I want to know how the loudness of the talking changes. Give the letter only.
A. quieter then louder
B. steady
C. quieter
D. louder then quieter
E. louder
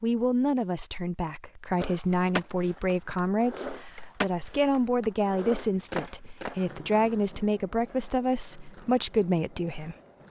B.